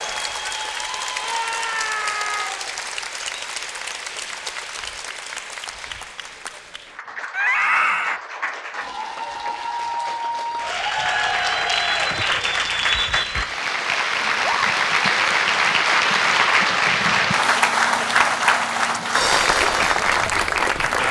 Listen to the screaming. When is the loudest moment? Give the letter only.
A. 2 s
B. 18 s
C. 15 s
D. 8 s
D.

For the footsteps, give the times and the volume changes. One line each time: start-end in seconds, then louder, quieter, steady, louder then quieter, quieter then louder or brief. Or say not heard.
not heard.